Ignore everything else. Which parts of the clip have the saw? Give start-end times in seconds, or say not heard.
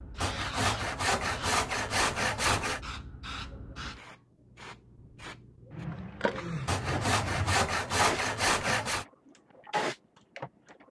0.2-2.8, 6.7-9.1.